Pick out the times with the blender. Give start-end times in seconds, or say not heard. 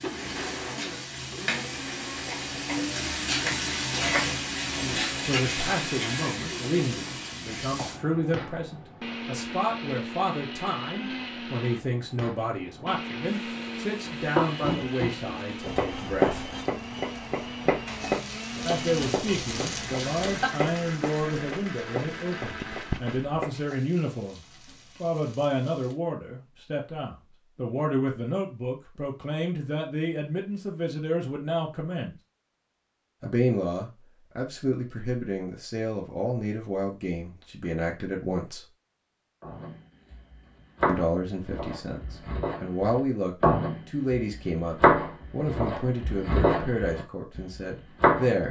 0.0-23.4.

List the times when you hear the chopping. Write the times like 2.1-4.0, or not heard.
14.1-23.6, 39.4-48.3.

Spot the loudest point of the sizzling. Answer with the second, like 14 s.
4 s.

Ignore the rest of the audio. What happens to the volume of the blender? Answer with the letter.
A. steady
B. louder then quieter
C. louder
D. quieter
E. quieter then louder
A.